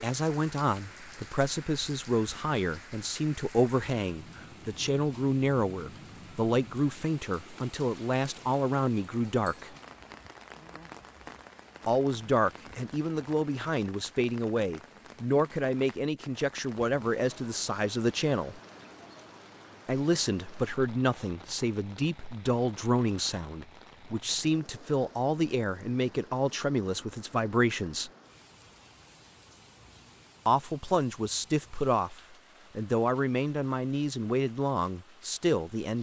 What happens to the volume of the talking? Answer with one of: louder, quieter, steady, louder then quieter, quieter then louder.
steady.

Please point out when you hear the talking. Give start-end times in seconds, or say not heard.
0.0-9.7, 11.8-18.6, 19.9-28.1, 30.4-35.9.